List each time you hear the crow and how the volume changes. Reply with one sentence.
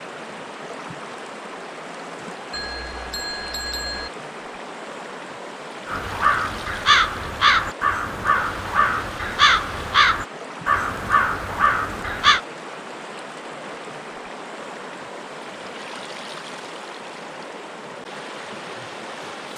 You can hear the crow from 5.8 to 12.4 s, at a steady volume.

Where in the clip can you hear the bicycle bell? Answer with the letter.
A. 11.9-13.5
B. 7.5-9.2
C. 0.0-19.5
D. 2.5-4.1
D.